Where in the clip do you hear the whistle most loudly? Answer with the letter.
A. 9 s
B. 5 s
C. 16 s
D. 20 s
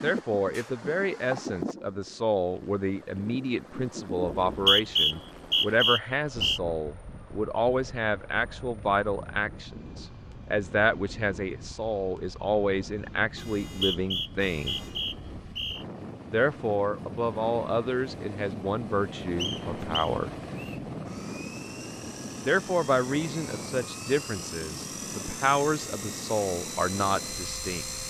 B.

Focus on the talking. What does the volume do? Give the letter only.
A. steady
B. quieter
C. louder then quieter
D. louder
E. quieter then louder
A.